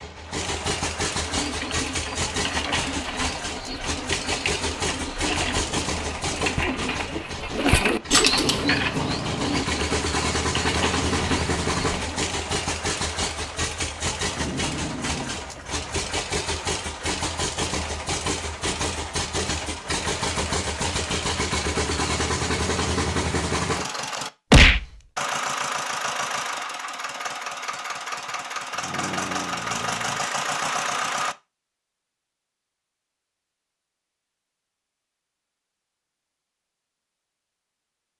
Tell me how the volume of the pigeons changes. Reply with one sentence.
The loudness of the pigeons goes up, then down.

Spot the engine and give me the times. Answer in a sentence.
The engine can be heard from 0.0 to 31.4 s.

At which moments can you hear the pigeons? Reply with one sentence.
The pigeons can be heard from 1.2 to 12.2 s.